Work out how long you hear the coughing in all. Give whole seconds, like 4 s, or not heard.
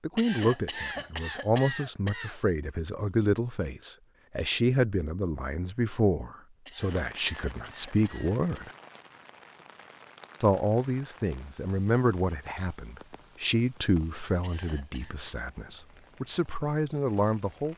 5 s.